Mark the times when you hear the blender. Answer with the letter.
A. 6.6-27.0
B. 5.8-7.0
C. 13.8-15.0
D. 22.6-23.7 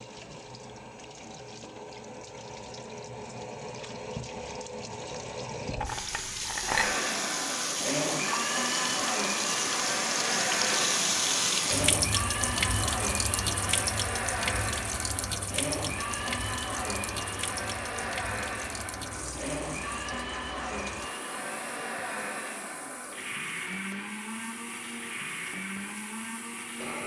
A.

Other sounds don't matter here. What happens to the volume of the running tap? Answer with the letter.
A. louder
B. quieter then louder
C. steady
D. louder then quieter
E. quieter
D.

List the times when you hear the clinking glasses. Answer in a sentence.
You can hear the clinking glasses from 5.8 to 7.0 s.